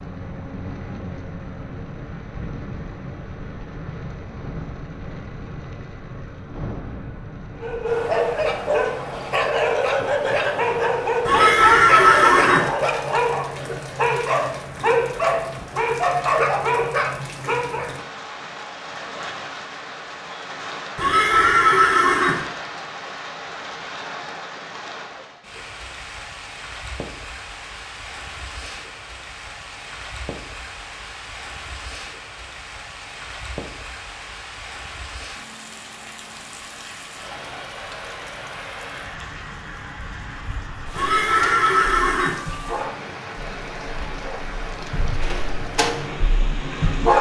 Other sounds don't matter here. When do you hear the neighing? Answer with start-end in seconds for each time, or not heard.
11.2-12.7, 20.9-22.4, 41.0-42.4.